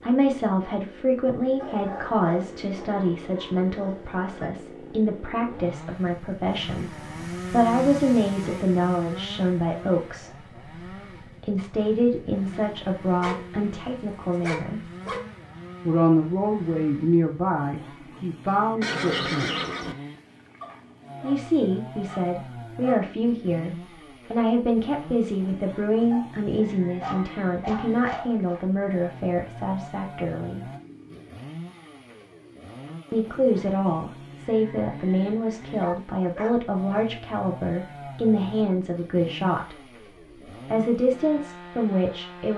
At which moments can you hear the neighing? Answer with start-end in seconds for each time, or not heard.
18.8-19.9.